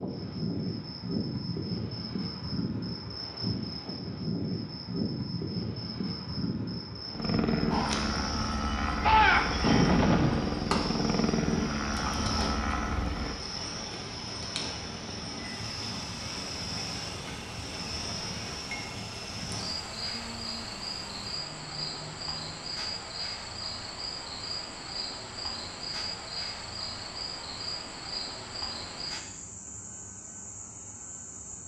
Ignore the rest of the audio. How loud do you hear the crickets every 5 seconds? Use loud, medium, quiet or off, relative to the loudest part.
loud, loud, loud, loud, loud, loud, medium.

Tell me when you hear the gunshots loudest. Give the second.
9 s.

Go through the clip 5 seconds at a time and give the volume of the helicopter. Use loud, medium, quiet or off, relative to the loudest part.
off, loud, loud, quiet, quiet, off, off.